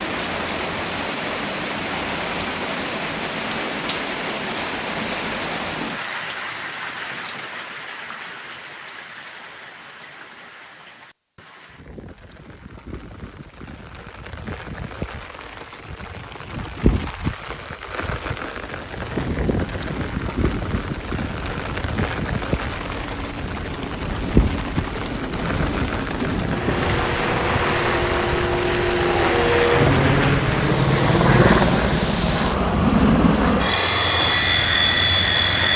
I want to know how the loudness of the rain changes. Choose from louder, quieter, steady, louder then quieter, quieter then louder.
quieter then louder.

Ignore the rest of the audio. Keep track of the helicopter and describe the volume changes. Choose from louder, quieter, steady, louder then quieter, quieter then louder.
louder.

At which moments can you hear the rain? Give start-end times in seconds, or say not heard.
0.0-35.7.